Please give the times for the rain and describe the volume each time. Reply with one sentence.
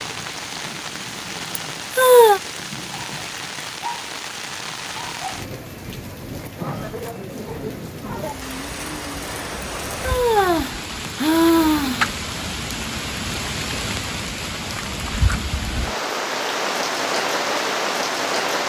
The rain can be heard from 0.0 to 18.6 s, getting louder.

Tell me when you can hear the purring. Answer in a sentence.
The purring can't be heard in this clip.